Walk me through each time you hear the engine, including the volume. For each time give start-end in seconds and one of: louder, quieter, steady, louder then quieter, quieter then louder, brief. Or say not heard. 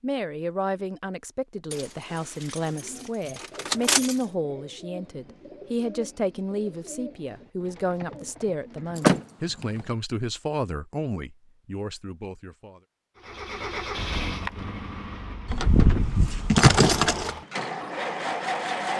13.2-18.9 quieter then louder.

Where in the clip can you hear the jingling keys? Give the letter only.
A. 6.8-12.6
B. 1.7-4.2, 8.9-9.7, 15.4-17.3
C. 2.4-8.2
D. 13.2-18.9
B.